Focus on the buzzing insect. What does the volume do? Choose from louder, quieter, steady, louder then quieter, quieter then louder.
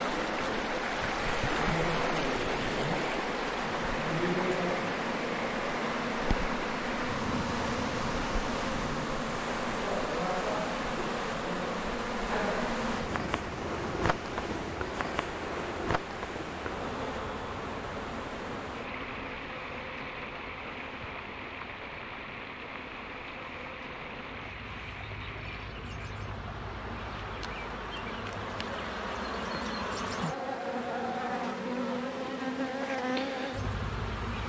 quieter then louder.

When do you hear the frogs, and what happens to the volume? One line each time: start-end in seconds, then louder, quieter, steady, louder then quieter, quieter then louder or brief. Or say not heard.
not heard.